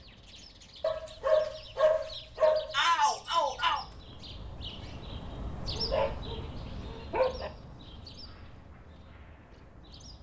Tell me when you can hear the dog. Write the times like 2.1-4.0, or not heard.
0.8-2.8, 5.8-7.5.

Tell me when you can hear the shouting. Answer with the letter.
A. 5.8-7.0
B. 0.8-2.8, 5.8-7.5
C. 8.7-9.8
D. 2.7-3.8
D.